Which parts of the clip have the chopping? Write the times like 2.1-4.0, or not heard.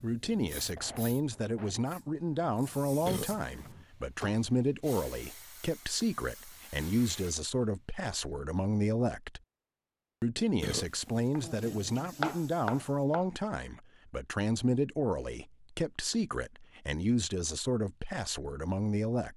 11.3-13.2.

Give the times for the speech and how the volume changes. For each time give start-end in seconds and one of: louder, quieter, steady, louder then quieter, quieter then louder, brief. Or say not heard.
0.0-9.4 steady
10.2-19.3 steady.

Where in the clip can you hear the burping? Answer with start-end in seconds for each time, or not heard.
3.0-3.7, 10.6-11.2.